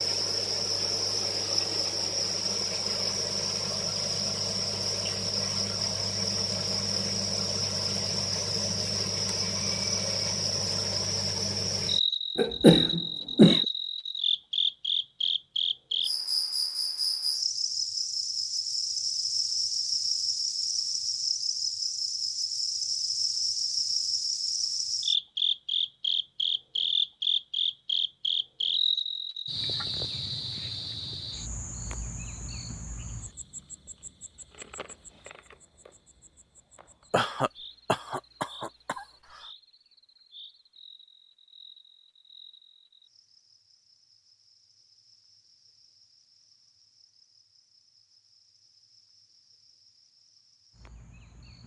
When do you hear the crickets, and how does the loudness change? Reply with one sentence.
The crickets can be heard from 0.0 to 51.6 s, getting quieter.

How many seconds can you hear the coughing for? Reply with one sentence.
You can hear the coughing for 3 seconds altogether.